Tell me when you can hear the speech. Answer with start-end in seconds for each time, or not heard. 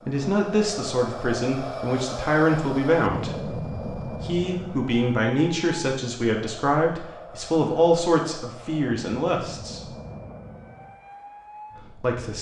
0.1-9.9, 11.8-12.3.